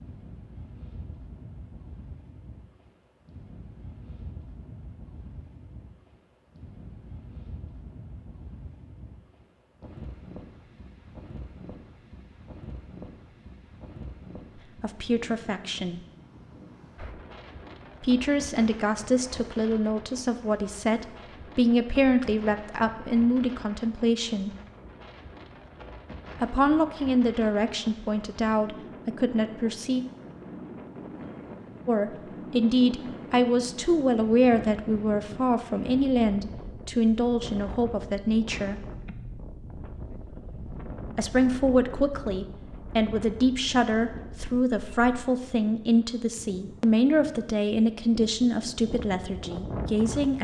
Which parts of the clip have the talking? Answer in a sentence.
You can hear the talking from 14.8 to 16.0 s, from 18.0 to 24.6 s, from 26.4 to 30.0 s, from 31.9 to 38.8 s and from 41.1 to 50.3 s.